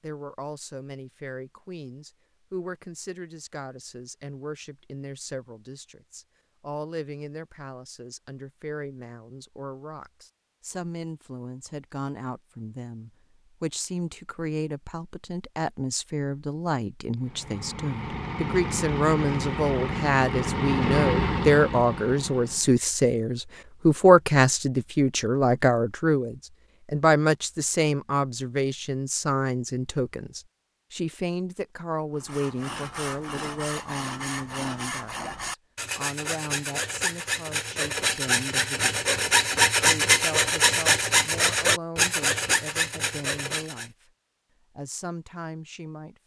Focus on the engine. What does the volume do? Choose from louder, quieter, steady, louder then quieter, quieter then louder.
louder then quieter.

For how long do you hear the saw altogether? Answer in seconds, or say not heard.
12 s.